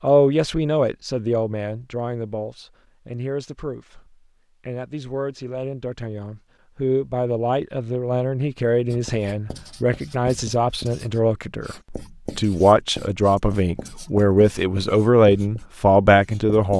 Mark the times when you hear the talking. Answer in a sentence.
The talking can be heard from 0.0 to 16.7 s.